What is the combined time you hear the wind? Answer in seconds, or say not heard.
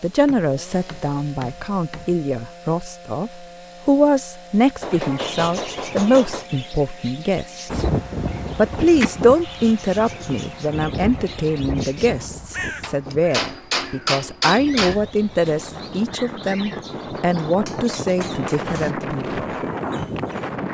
13 s.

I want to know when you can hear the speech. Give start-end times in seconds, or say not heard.
0.0-7.8, 8.6-19.5.